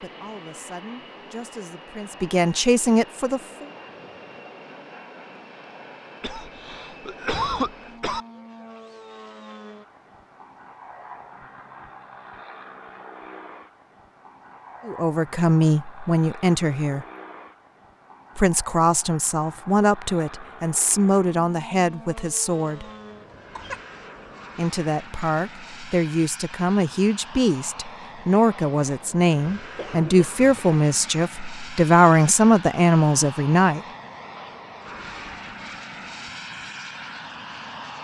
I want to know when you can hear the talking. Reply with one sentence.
The talking can be heard from 0.0 to 3.7 s, from 14.8 to 17.1 s, from 18.4 to 22.9 s and from 24.6 to 33.8 s.